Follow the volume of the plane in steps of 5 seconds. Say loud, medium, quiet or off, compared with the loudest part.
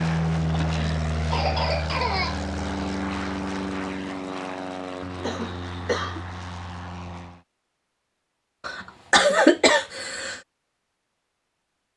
loud, medium, off.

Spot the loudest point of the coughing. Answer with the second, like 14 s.
9 s.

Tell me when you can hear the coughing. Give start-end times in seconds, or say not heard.
0.5-2.4, 5.2-6.2, 8.7-10.4.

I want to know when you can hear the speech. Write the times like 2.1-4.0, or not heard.
not heard.